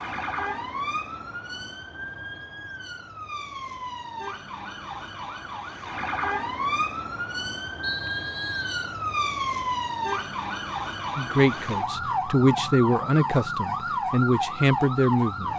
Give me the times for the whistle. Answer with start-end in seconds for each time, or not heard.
7.8-8.8.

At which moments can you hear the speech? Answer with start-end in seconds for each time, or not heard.
11.2-15.5.